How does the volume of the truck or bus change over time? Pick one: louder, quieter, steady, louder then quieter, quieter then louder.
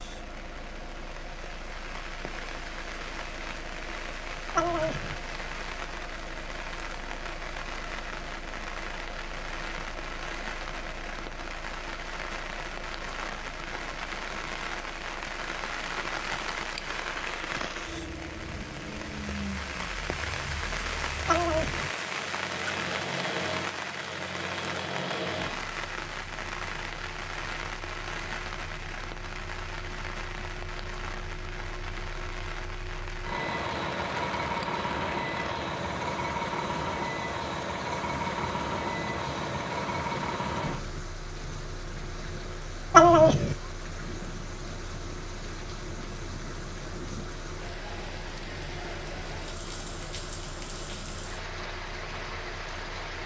louder then quieter.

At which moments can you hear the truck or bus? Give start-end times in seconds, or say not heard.
0.0-53.2.